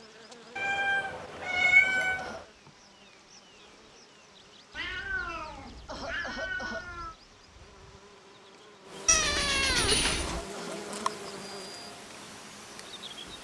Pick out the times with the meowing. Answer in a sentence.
You can hear the meowing from 0.6 to 2.4 s, from 4.7 to 7.2 s and from 9.1 to 10.4 s.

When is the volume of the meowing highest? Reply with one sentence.
The volume of the meowing peaks at 2 seconds.